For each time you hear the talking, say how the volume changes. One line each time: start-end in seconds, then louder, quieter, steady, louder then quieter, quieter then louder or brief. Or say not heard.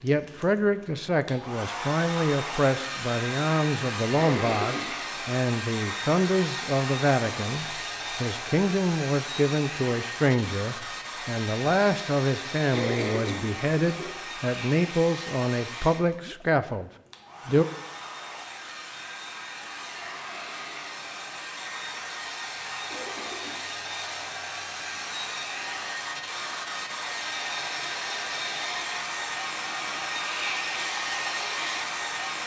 0.0-17.6 steady.